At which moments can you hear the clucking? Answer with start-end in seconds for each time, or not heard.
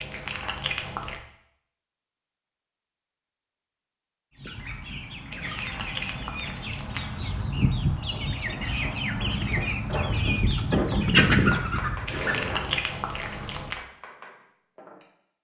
4.3-12.8.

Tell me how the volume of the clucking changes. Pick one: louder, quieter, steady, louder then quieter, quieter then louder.
louder.